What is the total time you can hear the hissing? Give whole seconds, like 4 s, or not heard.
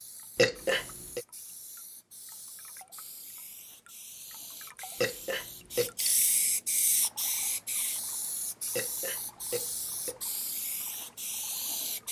12 s.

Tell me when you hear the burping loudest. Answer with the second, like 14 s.
1 s.